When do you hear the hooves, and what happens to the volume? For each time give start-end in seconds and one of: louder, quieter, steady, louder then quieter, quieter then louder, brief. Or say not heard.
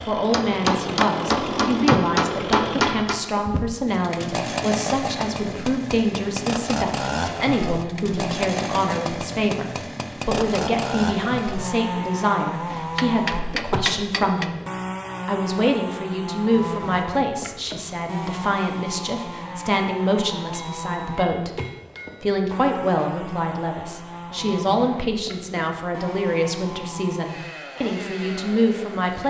not heard.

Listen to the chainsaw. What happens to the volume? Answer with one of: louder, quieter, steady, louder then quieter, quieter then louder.
quieter.